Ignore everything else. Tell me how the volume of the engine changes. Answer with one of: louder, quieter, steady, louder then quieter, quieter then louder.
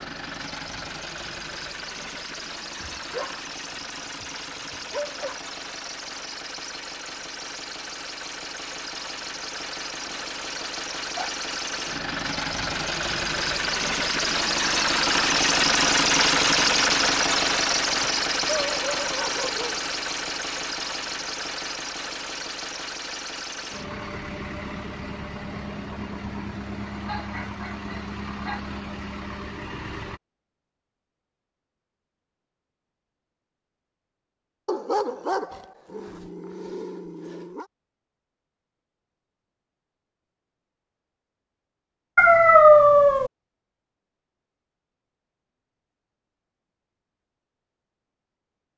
louder then quieter.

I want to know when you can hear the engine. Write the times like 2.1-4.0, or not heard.
0.0-30.2.